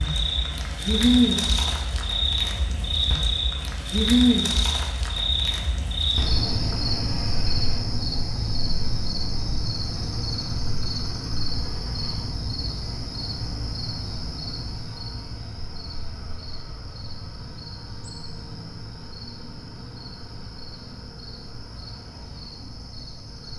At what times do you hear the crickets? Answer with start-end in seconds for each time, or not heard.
0.0-23.5.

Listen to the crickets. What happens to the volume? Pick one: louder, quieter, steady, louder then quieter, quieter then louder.
quieter.